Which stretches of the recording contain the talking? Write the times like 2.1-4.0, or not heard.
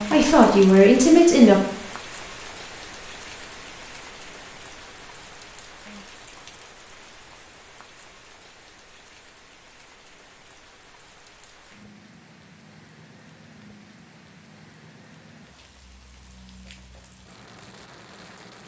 0.0-1.6.